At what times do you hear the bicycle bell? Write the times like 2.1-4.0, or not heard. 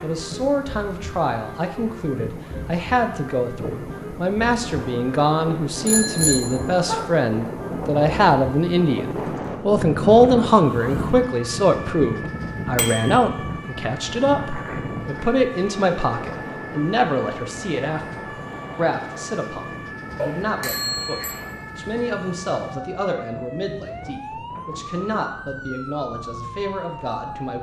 5.8-7.0, 12.8-13.2, 20.1-21.4.